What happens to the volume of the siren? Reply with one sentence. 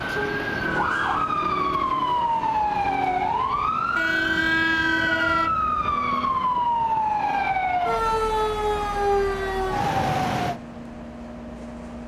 The loudness of the siren stays about the same.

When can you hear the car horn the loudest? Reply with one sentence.
The volume of the car horn peaks at 5 seconds.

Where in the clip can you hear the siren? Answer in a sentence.
You can hear the siren from 0.0 to 10.6 s.